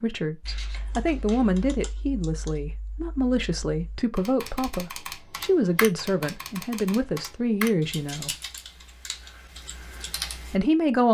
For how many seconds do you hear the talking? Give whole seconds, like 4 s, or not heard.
9 s.